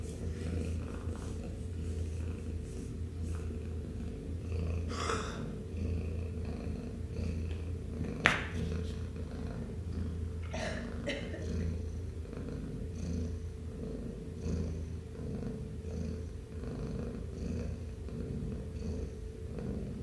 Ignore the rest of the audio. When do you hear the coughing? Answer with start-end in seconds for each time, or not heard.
4.8-5.4, 10.5-11.7.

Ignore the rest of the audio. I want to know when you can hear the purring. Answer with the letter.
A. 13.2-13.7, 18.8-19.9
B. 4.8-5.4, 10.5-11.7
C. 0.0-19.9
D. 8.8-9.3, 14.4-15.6
C.